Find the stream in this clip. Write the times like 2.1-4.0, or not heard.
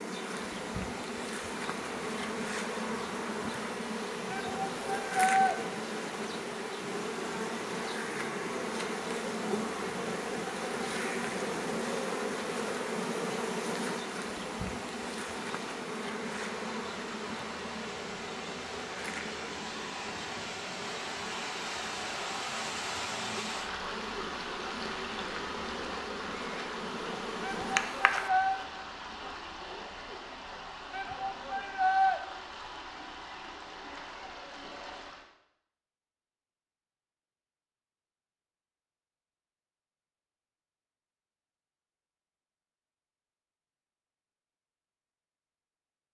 0.2-35.3.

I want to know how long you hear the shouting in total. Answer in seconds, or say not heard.
4 s.